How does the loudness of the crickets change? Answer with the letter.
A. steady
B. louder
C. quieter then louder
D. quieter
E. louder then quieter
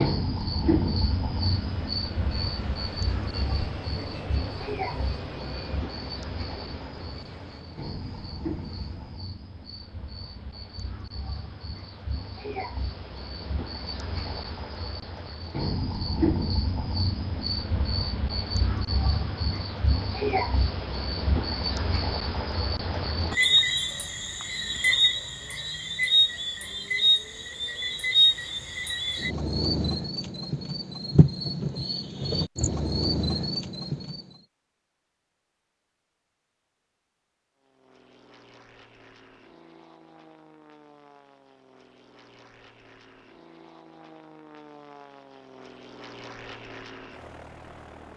C.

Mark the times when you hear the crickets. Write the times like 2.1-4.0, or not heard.
0.0-34.2.